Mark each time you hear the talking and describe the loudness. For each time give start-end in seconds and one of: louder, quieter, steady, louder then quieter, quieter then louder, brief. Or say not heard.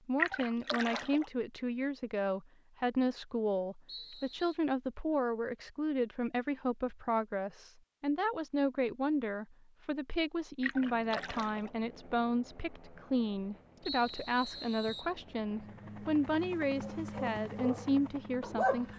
0.1-18.9 steady.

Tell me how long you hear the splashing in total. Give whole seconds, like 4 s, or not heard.
2 s.